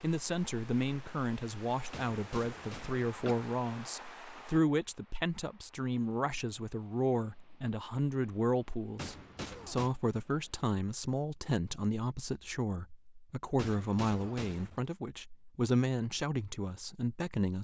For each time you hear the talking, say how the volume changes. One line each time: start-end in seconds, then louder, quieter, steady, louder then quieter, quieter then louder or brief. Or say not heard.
0.0-17.5 steady.